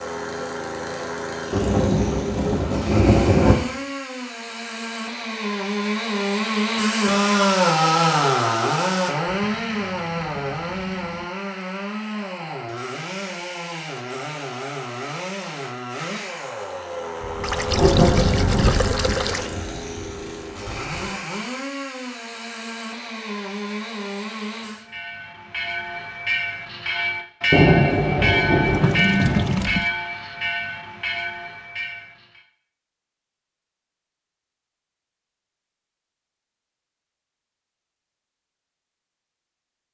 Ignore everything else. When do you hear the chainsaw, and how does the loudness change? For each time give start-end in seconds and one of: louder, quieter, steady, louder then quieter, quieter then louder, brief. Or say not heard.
0.0-24.9 louder then quieter.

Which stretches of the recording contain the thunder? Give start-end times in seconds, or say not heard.
1.5-3.5, 17.2-21.1, 27.5-29.6.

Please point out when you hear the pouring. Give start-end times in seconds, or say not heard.
9.2-11.2, 17.4-19.5, 28.6-29.9.